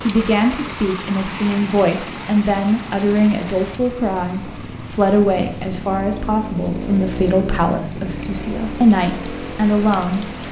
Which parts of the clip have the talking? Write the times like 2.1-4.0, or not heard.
0.0-10.3.